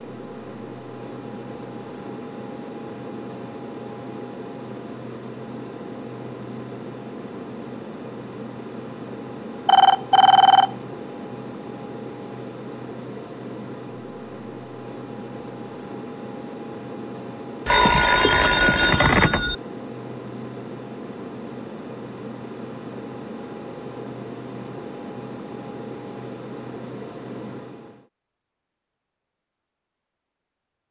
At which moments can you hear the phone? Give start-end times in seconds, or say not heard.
9.7-10.7, 17.6-19.6.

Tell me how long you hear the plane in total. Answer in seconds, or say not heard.
28 s.